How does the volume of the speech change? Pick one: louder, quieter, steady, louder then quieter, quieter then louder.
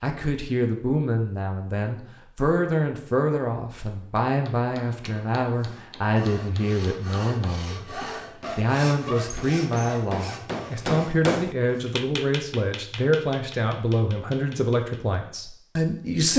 steady.